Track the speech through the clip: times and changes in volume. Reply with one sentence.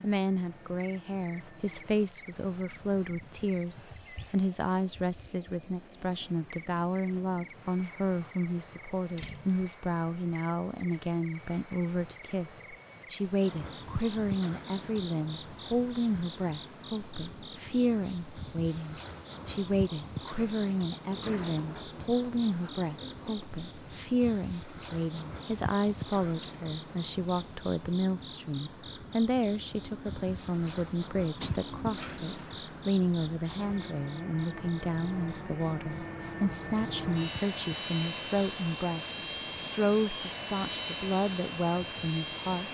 You can hear the speech from 0.0 to 42.7 s, at a steady volume.